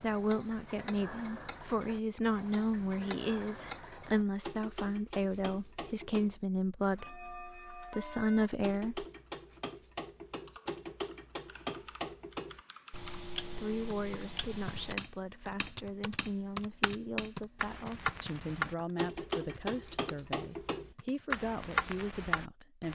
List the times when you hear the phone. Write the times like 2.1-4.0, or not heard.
not heard.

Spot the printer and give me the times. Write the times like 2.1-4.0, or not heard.
not heard.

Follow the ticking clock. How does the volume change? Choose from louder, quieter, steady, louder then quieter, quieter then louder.
louder.